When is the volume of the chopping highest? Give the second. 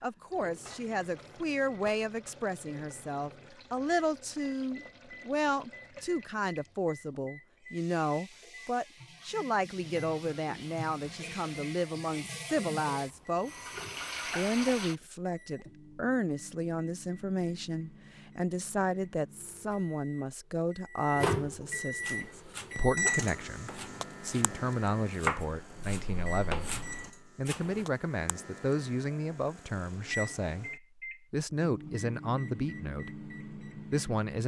25 s.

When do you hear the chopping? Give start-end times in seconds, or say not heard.
21.9-27.9.